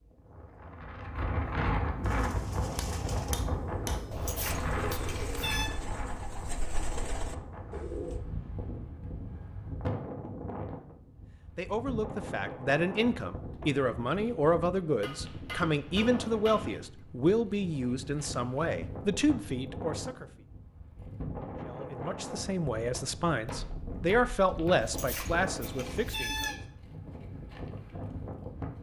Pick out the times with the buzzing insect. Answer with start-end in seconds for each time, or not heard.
not heard.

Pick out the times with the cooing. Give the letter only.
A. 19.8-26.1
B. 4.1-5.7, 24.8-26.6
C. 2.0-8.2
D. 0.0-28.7
C.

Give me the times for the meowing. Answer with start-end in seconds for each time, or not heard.
4.1-5.7, 24.8-26.6.